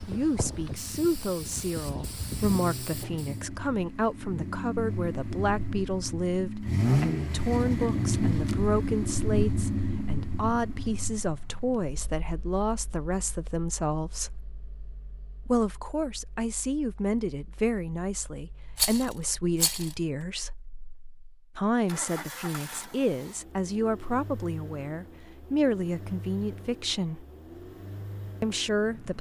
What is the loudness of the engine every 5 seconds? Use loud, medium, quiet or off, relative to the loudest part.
medium, loud, quiet, quiet, quiet, quiet.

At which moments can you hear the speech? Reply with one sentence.
The speech can be heard from 0.1 to 14.4 s, from 15.4 to 20.6 s, from 21.6 to 27.2 s and from 28.4 to 29.1 s.